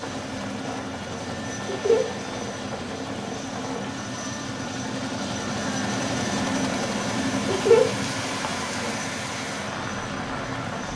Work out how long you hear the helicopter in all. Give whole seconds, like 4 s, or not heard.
11 s.